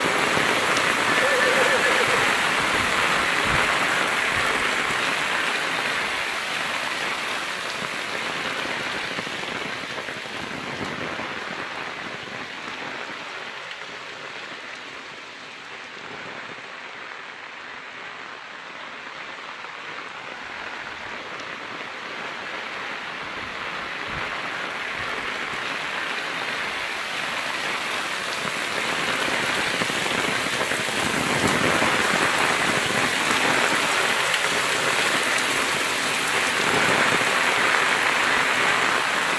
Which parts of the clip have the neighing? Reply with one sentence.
The neighing can be heard from 1.1 to 2.4 s.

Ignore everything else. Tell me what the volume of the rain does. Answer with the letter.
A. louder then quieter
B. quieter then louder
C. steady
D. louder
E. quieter
B.